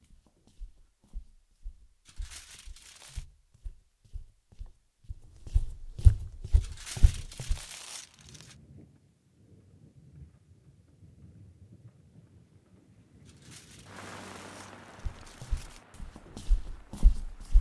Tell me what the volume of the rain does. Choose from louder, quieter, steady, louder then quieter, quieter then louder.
louder then quieter.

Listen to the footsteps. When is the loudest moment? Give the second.
6 s.